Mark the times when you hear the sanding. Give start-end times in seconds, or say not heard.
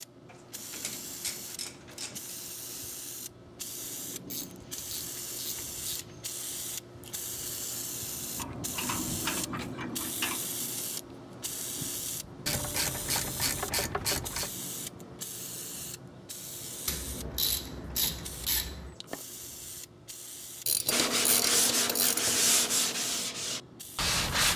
20.9-24.5.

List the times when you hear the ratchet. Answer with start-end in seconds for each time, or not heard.
0.2-2.4, 4.3-6.3, 8.3-10.4, 12.4-14.6, 16.9-18.9, 20.6-22.4.